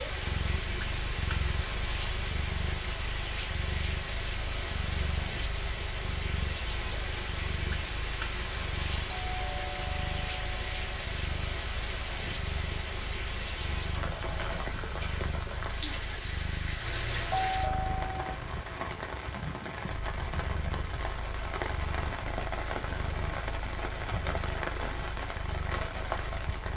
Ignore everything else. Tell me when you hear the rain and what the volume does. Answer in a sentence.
You can hear the rain from 0.0 to 26.7 s, at a steady volume.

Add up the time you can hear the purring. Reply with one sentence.
The purring can be heard for 27 seconds in total.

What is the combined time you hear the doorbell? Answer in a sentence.
The doorbell can be heard for 3 seconds in total.